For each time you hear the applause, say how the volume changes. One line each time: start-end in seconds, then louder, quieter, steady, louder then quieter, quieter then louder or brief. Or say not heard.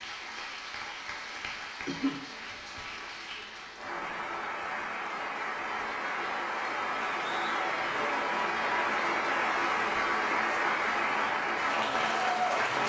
0.0-12.8 louder.